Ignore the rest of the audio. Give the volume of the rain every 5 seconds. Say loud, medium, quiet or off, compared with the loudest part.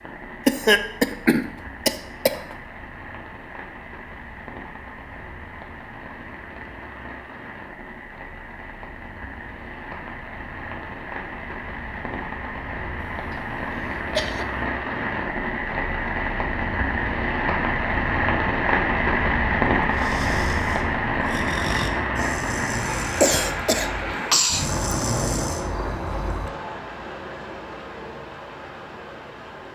quiet, quiet, medium, loud, loud, medium.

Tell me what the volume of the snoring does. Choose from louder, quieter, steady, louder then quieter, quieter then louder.
louder.